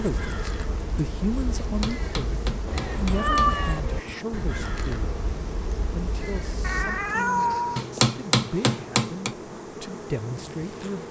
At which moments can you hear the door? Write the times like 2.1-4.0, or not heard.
not heard.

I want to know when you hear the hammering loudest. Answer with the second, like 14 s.
8 s.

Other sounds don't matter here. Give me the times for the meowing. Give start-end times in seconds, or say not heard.
2.6-3.8, 6.6-7.8.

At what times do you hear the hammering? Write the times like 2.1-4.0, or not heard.
1.6-3.5, 7.8-9.3.